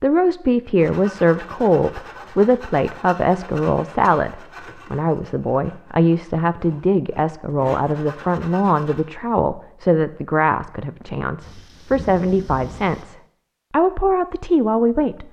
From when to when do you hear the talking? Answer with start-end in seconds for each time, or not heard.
0.0-15.2.